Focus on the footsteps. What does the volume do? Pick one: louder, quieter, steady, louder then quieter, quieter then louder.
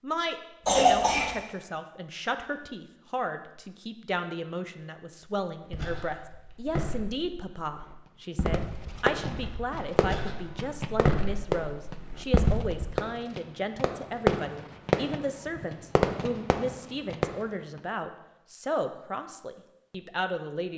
quieter then louder.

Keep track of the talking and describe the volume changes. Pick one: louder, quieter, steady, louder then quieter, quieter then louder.
steady.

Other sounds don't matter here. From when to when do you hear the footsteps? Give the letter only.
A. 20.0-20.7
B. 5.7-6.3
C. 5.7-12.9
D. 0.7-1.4
C.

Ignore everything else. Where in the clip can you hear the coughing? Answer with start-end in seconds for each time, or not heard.
0.7-1.4.